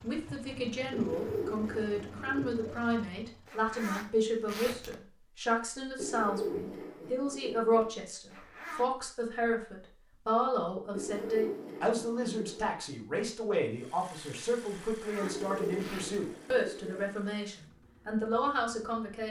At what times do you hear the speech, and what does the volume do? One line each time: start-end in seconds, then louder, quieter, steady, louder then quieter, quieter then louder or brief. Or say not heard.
0.0-19.2 steady.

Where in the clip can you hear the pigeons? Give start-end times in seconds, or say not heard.
0.9-2.9, 6.0-7.9, 10.9-12.8, 15.2-17.1.